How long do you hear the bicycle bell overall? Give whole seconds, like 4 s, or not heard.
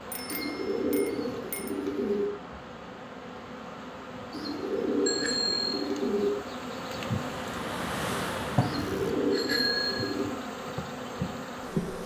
4 s.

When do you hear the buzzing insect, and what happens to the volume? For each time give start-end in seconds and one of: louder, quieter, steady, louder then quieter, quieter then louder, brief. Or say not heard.
0.0-12.0 louder.